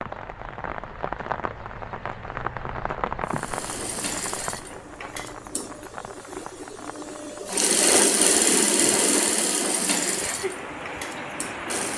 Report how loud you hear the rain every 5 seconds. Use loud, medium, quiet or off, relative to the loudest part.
loud, medium, loud.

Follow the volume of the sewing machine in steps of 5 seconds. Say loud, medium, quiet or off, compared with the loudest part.
medium, loud, medium.